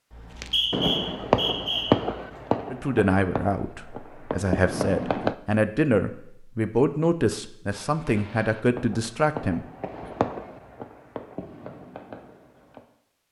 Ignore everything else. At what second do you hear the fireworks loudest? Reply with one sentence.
The loudest moment of the fireworks is at 2 seconds.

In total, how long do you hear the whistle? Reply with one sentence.
The whistle can be heard for 2 seconds in total.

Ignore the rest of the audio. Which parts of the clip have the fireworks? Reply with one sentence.
The fireworks can be heard from 0.4 to 5.3 s and from 7.7 to 12.8 s.